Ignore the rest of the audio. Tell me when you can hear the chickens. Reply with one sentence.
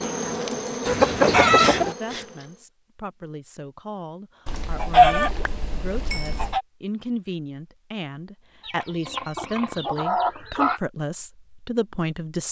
You can hear the chickens from 0.8 to 1.9 s, from 4.5 to 6.6 s and from 8.6 to 10.8 s.